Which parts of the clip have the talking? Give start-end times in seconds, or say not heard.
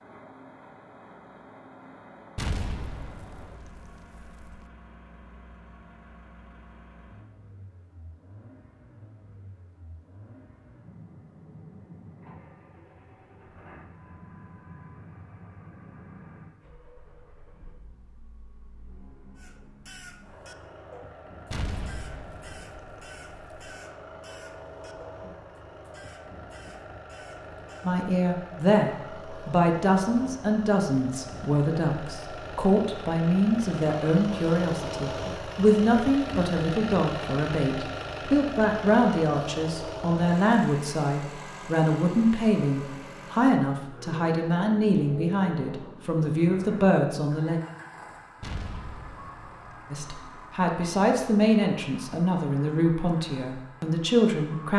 27.8-47.6, 49.9-54.7.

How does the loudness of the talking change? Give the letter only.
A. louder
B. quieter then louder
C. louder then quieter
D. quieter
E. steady
E.